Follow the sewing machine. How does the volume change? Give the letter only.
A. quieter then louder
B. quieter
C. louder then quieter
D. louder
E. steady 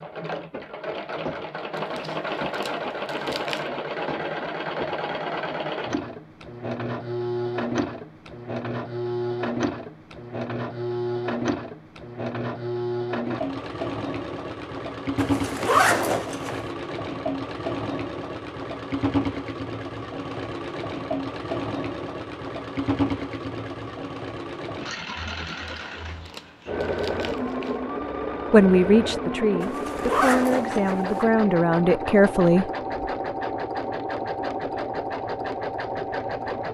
E.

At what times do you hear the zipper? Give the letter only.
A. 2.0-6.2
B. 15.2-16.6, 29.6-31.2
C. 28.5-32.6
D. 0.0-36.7
B.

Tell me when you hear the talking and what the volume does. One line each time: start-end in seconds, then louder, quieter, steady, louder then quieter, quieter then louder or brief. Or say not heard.
28.5-32.6 quieter then louder.